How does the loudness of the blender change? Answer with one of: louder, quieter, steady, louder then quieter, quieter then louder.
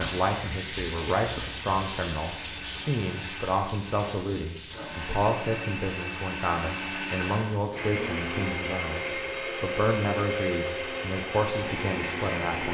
louder.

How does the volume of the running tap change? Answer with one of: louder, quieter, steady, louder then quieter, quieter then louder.
quieter.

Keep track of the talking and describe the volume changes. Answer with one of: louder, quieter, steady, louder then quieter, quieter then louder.
steady.